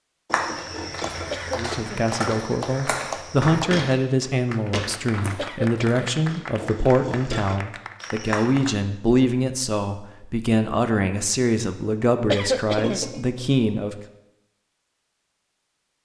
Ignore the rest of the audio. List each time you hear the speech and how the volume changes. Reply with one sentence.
You can hear the speech from 1.6 to 13.9 s, at a steady volume.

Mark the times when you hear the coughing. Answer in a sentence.
You can hear the coughing from 1.3 to 2.0 s, from 5.3 to 6.0 s and from 12.2 to 13.1 s.